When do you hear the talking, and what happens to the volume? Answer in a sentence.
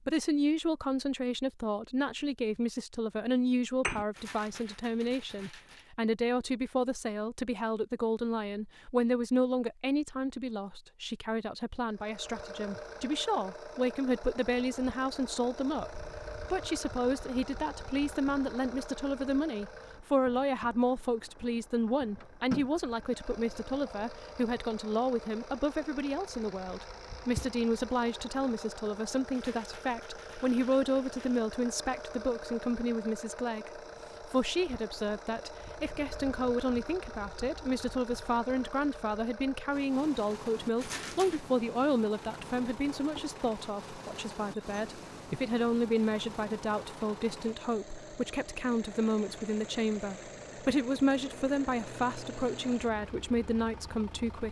The talking can be heard from 0.1 to 54.4 s, at a steady volume.